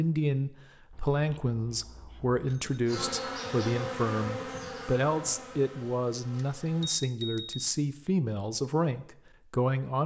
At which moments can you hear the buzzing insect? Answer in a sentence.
You can hear the buzzing insect from 2.9 to 7.0 s.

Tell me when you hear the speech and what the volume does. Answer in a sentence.
The speech can be heard from 0.0 to 10.0 s, at a steady volume.